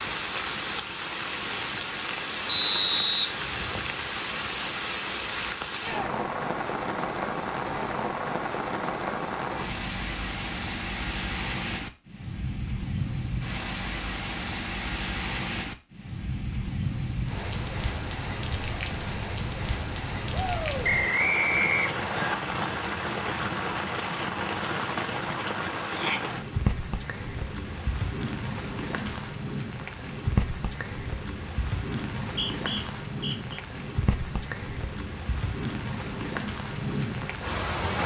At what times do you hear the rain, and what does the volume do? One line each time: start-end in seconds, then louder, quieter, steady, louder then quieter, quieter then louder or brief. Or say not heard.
0.0-38.0 steady.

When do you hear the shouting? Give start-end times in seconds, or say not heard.
5.7-6.1, 20.3-20.9, 25.9-26.3.